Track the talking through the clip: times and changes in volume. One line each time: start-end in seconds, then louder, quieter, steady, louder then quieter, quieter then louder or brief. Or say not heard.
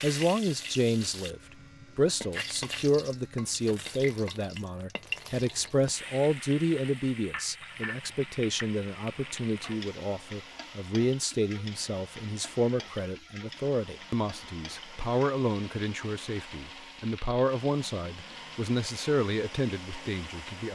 0.0-20.7 steady.